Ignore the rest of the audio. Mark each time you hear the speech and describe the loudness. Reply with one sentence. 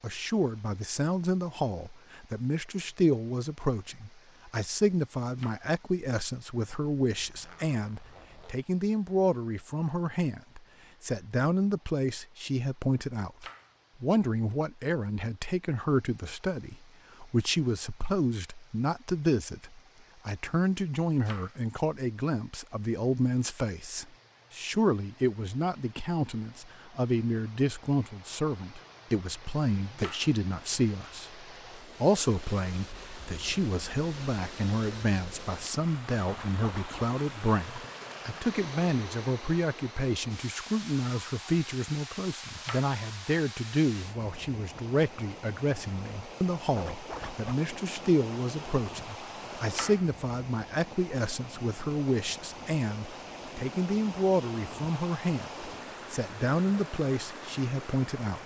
The speech can be heard from 0.0 to 58.4 s, at a steady volume.